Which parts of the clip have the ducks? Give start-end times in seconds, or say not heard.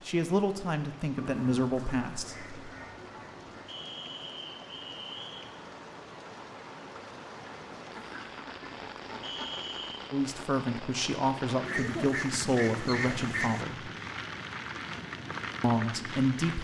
1.1-3.7, 7.9-9.5, 11.7-13.7.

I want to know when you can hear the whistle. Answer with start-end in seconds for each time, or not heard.
3.6-5.5, 9.2-10.1.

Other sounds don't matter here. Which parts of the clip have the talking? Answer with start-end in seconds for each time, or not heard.
0.1-2.5, 10.1-13.9, 15.6-16.5.